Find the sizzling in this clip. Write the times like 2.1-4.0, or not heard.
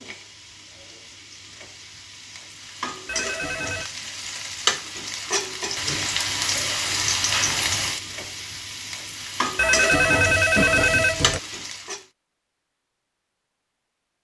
0.0-12.1.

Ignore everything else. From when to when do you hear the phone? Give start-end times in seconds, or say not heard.
3.0-3.9, 9.6-11.4.